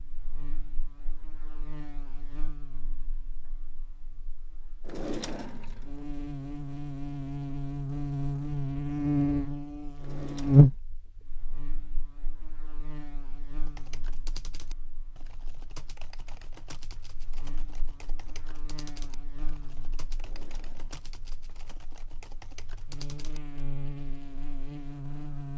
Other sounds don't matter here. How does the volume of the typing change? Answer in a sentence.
The loudness of the typing stays about the same.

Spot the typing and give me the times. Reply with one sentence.
You can hear the typing from 13.7 to 23.6 s.